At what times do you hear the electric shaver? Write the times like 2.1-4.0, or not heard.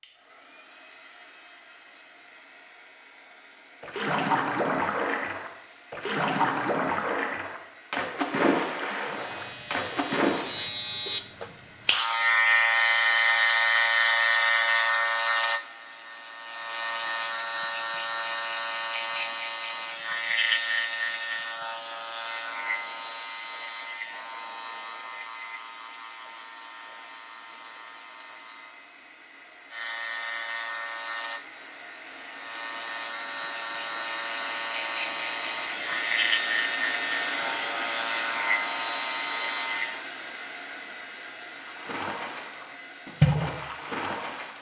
9.1-40.0.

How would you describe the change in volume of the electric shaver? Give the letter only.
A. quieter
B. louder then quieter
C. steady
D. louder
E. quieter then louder
E.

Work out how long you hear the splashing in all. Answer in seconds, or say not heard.
10 s.